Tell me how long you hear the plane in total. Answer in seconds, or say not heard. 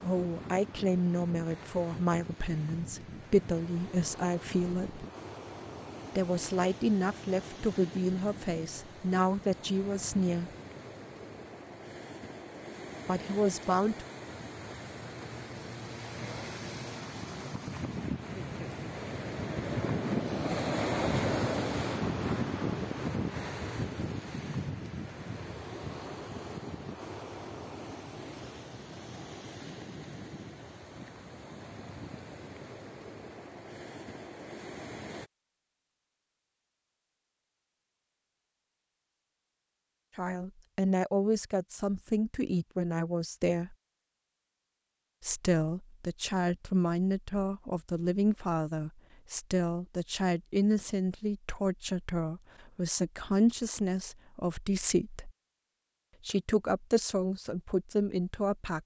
not heard.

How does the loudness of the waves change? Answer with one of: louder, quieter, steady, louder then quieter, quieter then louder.
louder then quieter.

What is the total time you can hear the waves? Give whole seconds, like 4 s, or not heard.
35 s.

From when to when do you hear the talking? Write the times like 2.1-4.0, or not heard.
0.0-5.0, 6.2-10.5, 13.1-14.1, 40.1-43.8, 45.2-55.3, 56.2-58.8.